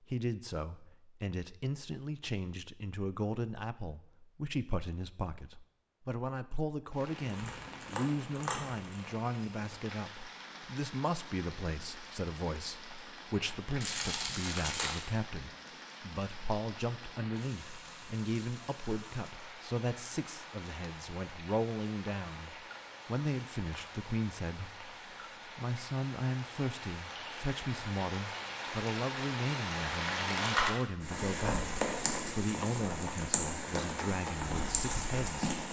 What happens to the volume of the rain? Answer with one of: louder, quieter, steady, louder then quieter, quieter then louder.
louder.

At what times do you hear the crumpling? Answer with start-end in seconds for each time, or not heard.
7.2-9.0, 13.8-15.1, 30.2-30.9.